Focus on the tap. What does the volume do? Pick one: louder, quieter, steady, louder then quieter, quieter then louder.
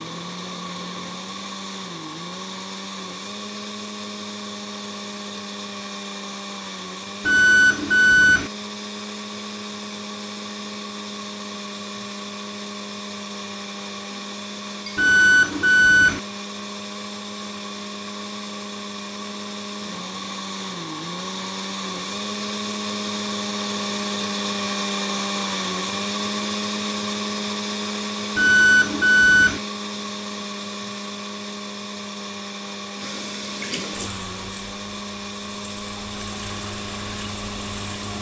quieter then louder.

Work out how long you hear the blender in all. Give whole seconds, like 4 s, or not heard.
38 s.